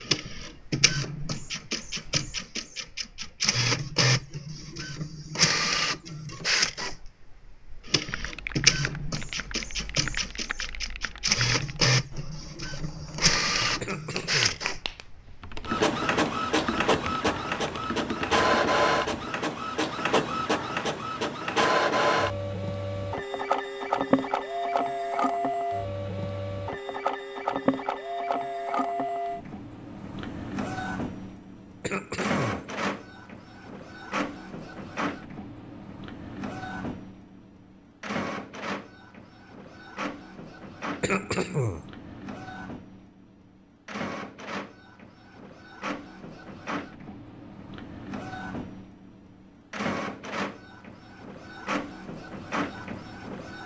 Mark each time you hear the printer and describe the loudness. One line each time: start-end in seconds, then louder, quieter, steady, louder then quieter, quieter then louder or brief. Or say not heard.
0.0-53.6 quieter.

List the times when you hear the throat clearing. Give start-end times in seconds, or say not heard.
13.8-14.6, 31.8-32.6, 41.0-41.9.